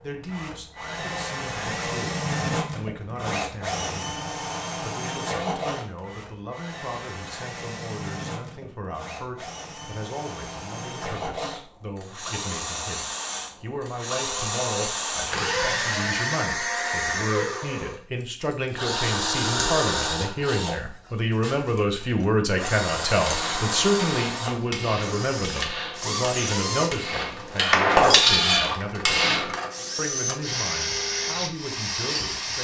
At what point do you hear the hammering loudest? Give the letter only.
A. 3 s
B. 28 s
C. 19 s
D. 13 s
B.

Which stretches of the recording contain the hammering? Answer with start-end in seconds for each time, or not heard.
23.2-29.6.